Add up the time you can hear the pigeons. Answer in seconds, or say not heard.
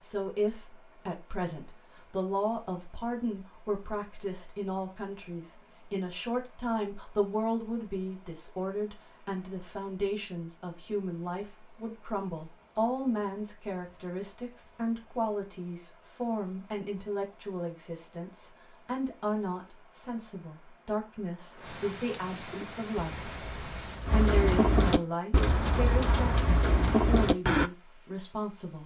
5 s.